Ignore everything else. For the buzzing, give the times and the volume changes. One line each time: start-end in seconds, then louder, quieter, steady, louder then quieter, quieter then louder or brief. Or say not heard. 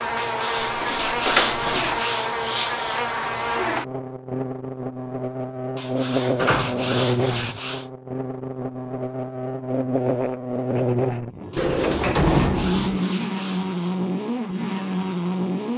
0.0-15.7 steady.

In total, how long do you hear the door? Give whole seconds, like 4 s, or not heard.
4 s.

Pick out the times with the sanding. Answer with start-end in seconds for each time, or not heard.
0.1-3.0, 5.8-7.9, 11.5-13.9.